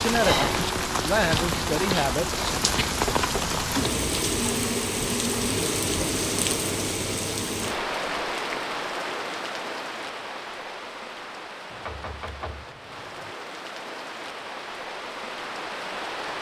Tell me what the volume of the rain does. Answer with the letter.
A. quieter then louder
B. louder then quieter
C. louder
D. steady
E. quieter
E.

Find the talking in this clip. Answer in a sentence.
The talking can be heard from 0.0 to 2.4 s.